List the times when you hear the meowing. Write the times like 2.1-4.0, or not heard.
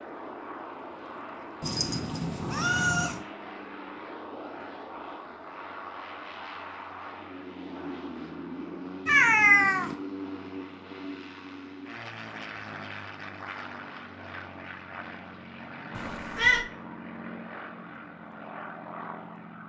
1.6-3.2, 9.1-9.9, 15.9-16.6.